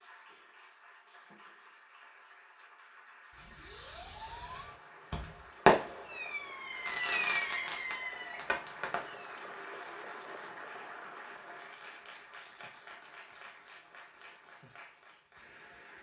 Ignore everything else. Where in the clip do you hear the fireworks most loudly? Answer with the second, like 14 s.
6 s.